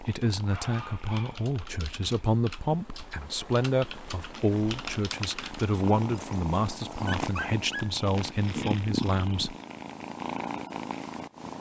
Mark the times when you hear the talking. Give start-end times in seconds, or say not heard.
0.0-9.6.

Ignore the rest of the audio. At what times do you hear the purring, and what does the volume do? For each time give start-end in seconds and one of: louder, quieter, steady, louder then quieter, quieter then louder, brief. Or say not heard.
0.0-11.5 louder.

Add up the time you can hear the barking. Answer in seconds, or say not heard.
3 s.